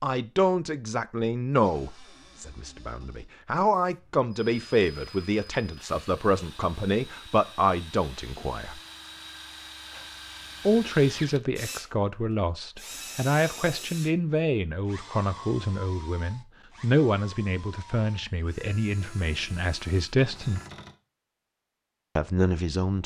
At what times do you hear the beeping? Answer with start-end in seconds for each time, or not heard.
not heard.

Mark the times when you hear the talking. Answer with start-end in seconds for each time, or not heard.
0.0-8.8, 10.7-20.6, 22.1-23.0.